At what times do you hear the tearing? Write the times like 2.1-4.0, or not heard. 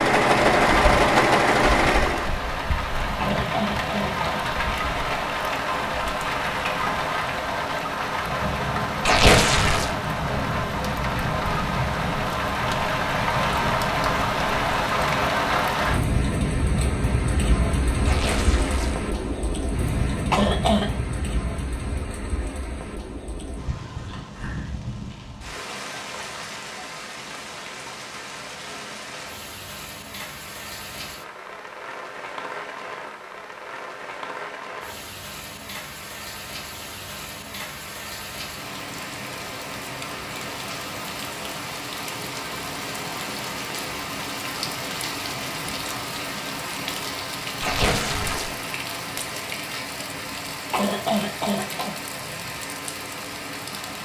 9.1-9.9, 18.1-19.0, 47.6-48.5.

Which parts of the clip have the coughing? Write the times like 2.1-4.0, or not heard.
3.2-4.2, 20.3-20.9, 50.7-52.0.